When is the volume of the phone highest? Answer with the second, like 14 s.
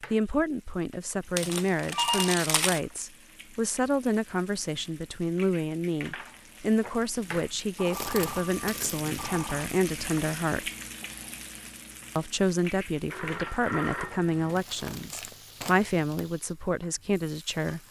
2 s.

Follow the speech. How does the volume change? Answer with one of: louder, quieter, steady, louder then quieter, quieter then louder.
steady.